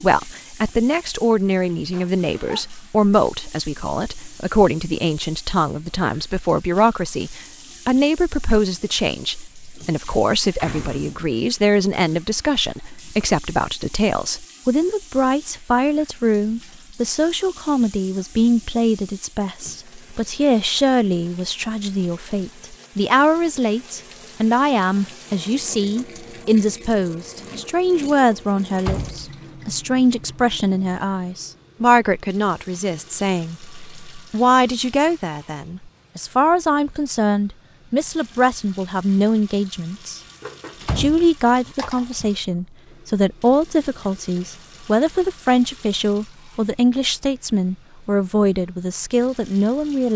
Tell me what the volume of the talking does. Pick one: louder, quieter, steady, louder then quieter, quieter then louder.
steady.